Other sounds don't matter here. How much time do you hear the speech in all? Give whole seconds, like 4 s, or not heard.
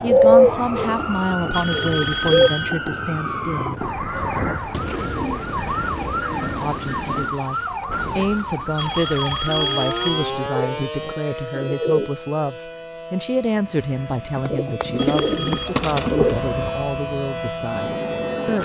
16 s.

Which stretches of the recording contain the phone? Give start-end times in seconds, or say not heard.
1.5-2.7, 8.8-10.4, 14.9-15.7.